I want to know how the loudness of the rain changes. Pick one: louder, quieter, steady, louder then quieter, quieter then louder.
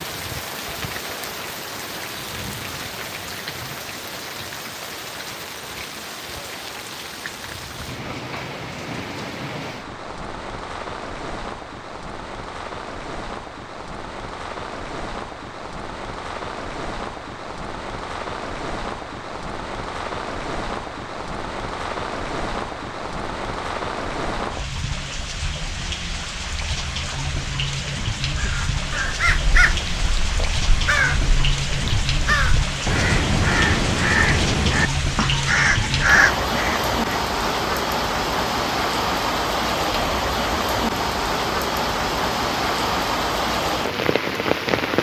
louder.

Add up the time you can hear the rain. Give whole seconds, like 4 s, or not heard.
45 s.